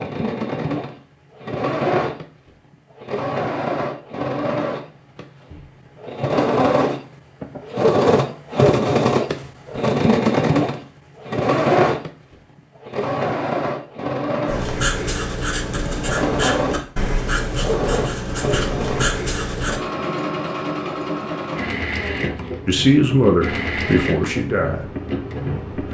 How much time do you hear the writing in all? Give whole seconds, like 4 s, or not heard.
5 s.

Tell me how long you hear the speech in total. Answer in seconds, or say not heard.
2 s.